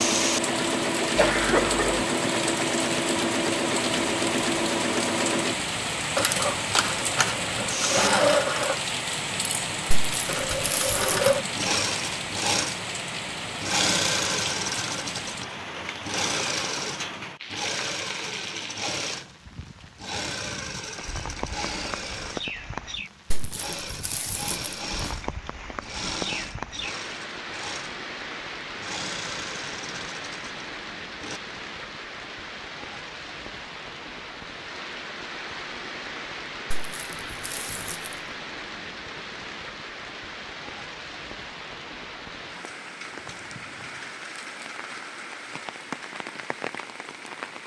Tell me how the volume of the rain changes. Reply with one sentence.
The volume of the rain goes down.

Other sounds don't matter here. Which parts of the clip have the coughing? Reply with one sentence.
You can hear the coughing from 1.1 to 2.0 s.